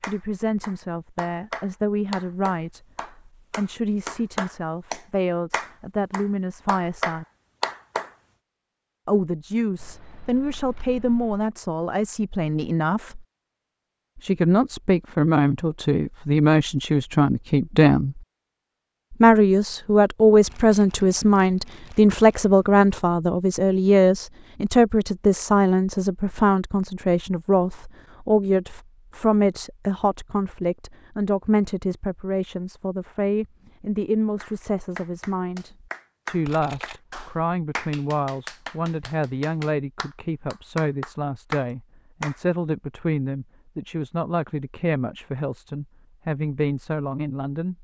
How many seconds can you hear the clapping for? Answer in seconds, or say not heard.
16 s.